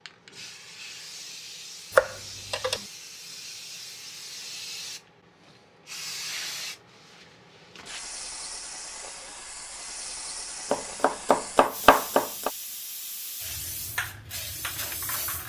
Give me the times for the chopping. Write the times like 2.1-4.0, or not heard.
1.9-2.8, 10.7-12.5.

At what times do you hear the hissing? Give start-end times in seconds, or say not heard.
0.0-15.4.